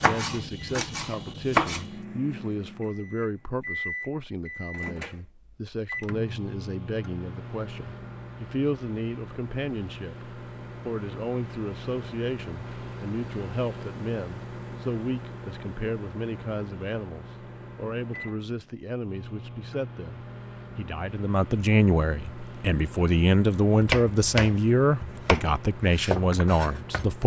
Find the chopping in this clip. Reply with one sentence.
You can hear the chopping from 0.0 to 1.9 s and from 23.8 to 27.1 s.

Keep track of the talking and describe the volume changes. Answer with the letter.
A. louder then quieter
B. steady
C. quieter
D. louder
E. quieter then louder
D.